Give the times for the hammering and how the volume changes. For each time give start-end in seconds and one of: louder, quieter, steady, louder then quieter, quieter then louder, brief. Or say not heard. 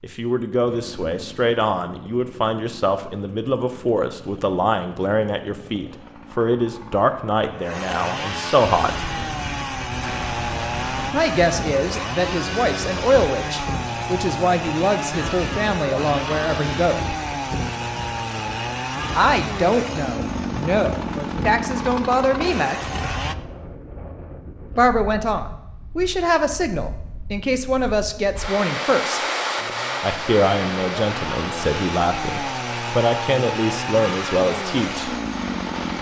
not heard.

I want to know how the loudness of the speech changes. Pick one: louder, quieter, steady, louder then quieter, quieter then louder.
steady.